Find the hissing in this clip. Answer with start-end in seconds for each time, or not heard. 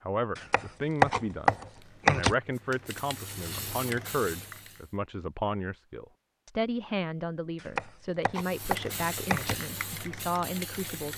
1.6-5.0, 8.3-11.1.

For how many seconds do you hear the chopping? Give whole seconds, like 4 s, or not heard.
4 s.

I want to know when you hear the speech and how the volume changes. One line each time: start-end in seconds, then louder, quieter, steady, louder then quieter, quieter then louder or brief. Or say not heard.
0.0-11.1 steady.